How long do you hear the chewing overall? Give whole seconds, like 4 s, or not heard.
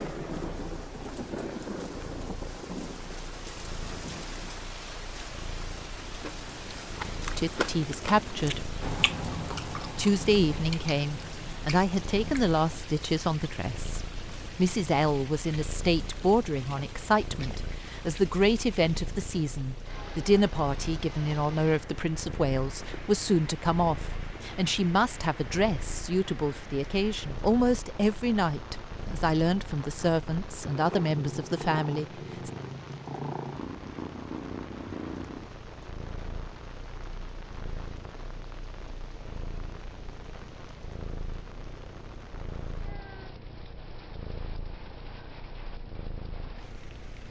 7 s.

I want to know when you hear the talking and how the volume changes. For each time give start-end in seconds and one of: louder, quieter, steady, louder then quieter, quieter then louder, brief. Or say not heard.
7.3-8.7 brief
9.9-32.5 steady.